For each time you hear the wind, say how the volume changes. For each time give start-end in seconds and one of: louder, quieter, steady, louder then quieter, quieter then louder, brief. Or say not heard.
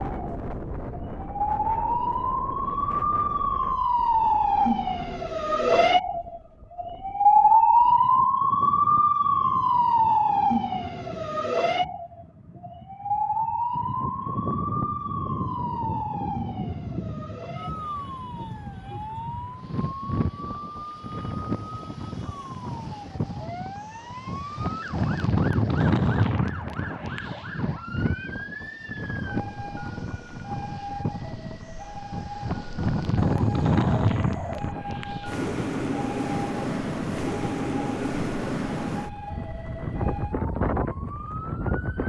0.0-42.0 louder.